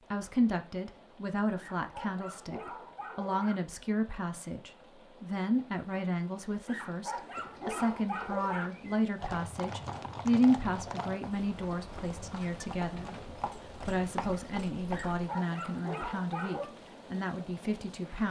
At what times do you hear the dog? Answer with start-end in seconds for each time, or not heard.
1.6-3.5, 6.7-8.7, 14.9-16.7.